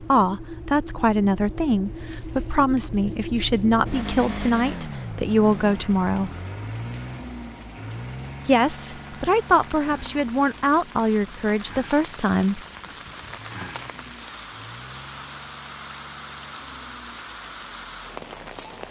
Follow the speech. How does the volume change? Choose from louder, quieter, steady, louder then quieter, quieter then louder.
steady.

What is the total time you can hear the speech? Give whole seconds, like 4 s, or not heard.
10 s.